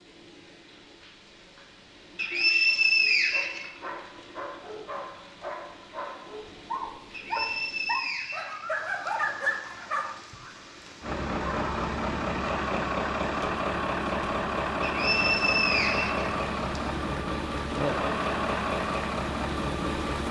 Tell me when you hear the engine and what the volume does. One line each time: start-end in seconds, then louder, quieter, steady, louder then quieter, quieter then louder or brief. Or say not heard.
11.0-20.2 steady.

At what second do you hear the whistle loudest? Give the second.
3 s.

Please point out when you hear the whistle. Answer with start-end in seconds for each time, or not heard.
2.1-3.7, 7.1-9.1, 14.8-16.8.